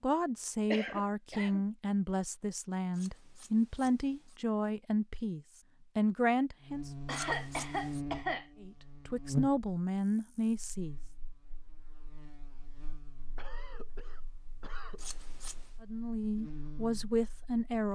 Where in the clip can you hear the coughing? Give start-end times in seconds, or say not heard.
0.7-1.6, 7.0-8.4, 13.3-15.1.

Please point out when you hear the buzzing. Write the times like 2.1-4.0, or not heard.
6.6-17.9.